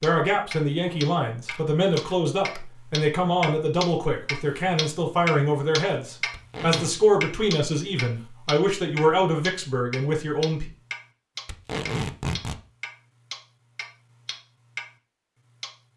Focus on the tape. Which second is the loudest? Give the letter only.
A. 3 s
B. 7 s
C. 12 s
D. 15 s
C.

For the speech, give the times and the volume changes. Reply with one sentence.
The speech can be heard from 0.0 to 10.7 s, at a steady volume.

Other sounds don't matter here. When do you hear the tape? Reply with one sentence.
The tape can be heard from 1.5 to 2.6 s, from 6.3 to 7.0 s and from 11.4 to 12.6 s.